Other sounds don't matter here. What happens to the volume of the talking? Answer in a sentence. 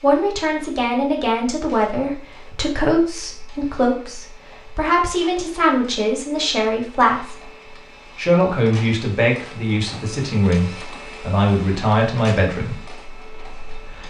The volume of the talking stays about the same.